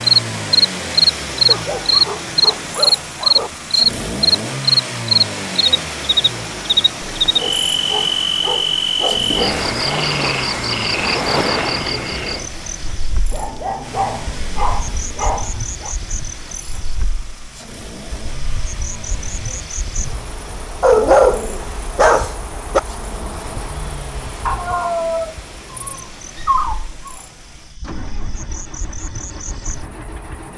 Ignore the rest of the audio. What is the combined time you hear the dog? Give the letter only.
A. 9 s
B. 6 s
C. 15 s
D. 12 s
D.